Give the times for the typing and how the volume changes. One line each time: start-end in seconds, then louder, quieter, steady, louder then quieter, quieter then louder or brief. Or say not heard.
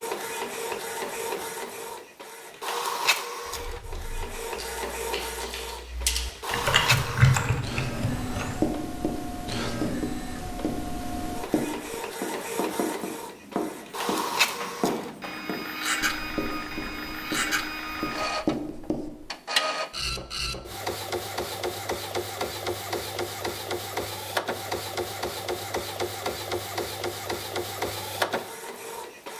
3.5-8.6 louder then quieter.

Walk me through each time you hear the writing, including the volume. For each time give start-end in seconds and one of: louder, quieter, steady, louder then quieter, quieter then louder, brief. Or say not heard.
8.4-19.2 steady.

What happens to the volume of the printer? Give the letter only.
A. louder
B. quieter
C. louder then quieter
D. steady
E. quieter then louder
D.